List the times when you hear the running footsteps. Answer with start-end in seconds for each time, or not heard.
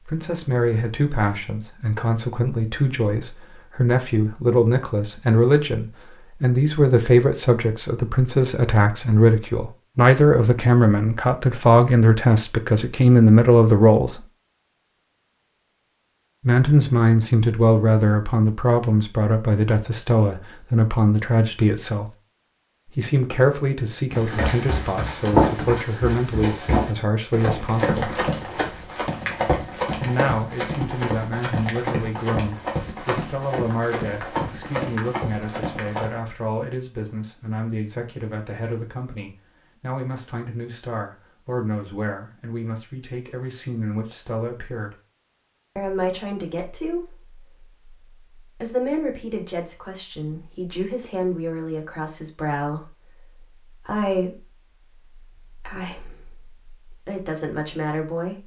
24.1-36.2.